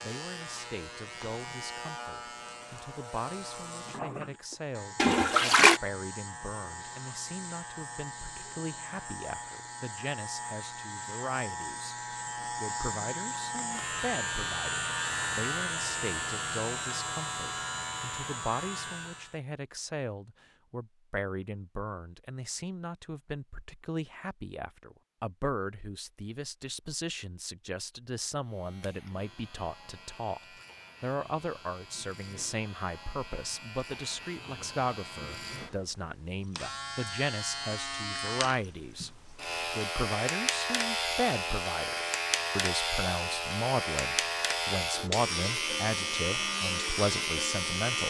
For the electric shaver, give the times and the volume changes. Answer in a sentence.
You can hear the electric shaver from 0.0 to 19.4 s, getting louder; and from 28.4 to 48.0 s, getting louder.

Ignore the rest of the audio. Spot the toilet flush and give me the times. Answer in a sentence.
The toilet flush can be heard from 5.0 to 5.8 s.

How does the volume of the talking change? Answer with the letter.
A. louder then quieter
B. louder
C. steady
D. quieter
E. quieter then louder
B.